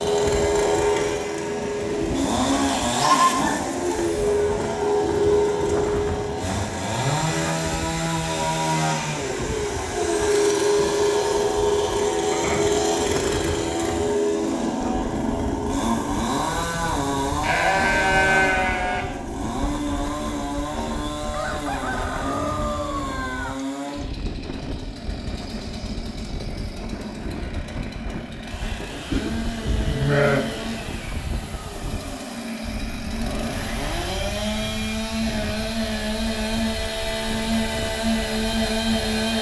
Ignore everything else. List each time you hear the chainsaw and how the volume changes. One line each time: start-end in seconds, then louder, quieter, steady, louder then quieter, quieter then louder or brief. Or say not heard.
0.0-39.3 quieter then louder.